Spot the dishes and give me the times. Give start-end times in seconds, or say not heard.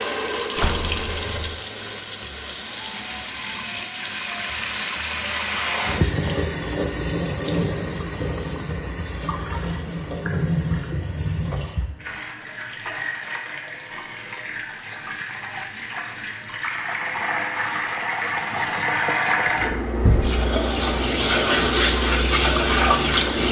not heard.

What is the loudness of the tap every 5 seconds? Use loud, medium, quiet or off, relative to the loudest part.
medium, medium, medium, medium, loud.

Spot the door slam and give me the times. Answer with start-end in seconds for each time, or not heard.
0.6-1.6.